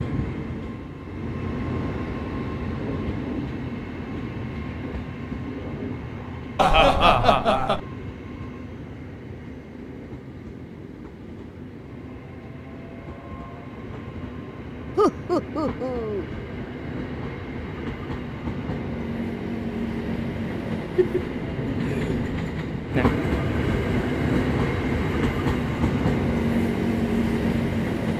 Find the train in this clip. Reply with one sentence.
You can hear the train from 0.0 to 28.1 s.